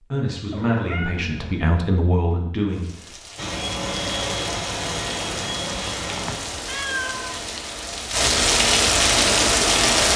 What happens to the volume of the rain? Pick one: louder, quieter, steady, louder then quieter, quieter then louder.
louder.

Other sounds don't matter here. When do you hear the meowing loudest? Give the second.
7 s.